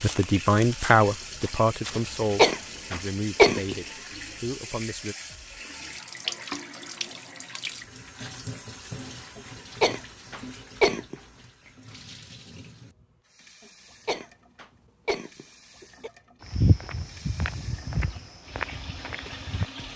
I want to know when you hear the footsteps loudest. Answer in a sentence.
The volume of the footsteps peaks at 17 seconds.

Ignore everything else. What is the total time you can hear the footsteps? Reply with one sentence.
The footsteps can be heard for 6 seconds in total.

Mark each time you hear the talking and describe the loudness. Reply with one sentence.
You can hear the talking from 0.0 to 5.2 s, getting quieter.